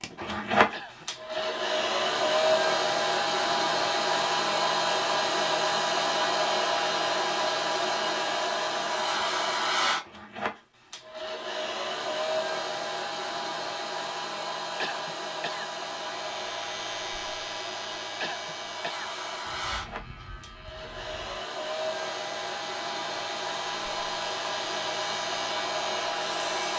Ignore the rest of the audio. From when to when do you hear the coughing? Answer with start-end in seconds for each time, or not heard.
0.7-1.6, 14.8-15.7, 18.2-19.1.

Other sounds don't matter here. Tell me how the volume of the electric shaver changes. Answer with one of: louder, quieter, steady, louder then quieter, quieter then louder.
quieter then louder.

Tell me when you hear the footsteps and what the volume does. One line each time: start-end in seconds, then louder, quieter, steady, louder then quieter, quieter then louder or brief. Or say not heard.
not heard.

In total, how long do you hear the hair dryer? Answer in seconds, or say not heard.
27 s.